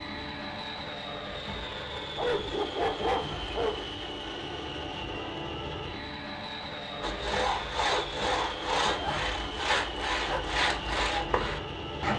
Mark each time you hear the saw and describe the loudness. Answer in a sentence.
You can hear the saw from 7.0 to 12.1 s, at a steady volume.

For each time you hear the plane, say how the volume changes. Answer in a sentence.
You can hear the plane from 0.0 to 12.1 s, at a steady volume.